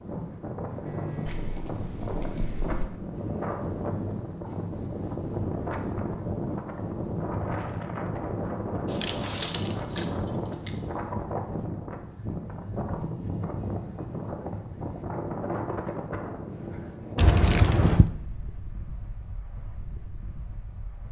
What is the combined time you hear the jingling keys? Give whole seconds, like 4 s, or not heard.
5 s.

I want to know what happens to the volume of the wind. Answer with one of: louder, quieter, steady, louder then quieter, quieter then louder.
quieter.